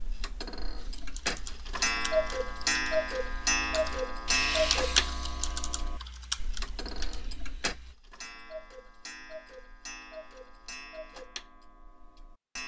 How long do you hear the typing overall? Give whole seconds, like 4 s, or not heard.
7 s.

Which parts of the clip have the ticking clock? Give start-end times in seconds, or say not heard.
0.0-12.6.